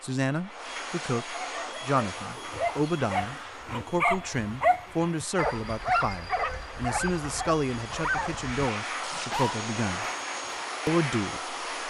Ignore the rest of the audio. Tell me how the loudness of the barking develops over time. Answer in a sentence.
The loudness of the barking goes up, then down.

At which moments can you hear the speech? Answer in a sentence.
The speech can be heard from 0.0 to 10.1 s and from 10.8 to 11.6 s.